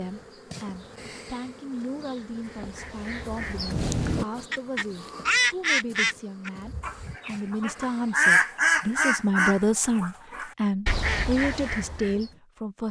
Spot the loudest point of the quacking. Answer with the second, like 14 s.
8 s.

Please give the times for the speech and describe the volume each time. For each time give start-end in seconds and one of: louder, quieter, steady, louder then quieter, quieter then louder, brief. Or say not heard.
0.0-12.8 louder.